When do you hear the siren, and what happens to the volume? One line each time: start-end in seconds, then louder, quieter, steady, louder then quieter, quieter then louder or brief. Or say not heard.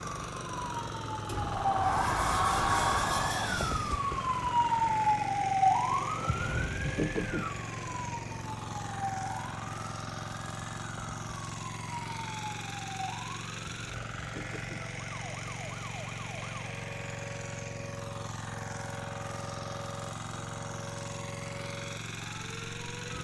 0.0-23.1 quieter.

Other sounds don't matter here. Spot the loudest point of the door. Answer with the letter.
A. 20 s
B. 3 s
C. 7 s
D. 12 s
B.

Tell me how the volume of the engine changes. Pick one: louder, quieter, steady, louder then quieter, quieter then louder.
steady.